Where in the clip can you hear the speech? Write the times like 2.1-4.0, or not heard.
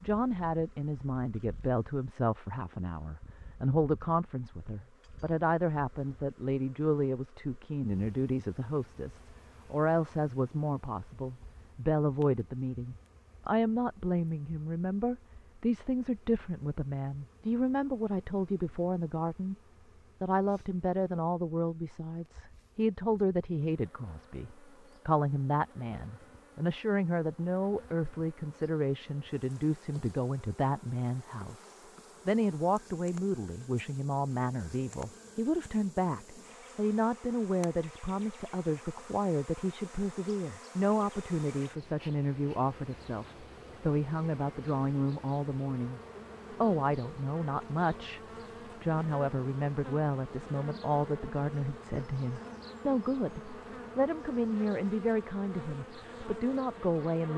0.0-19.6, 20.2-46.0, 46.6-48.2, 48.8-57.3.